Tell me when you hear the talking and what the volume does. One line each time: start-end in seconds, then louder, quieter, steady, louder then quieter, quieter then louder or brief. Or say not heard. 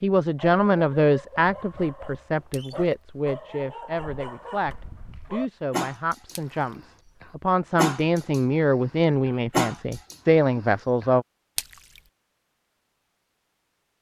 0.0-11.2 quieter then louder.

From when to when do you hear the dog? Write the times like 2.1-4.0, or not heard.
0.3-11.1.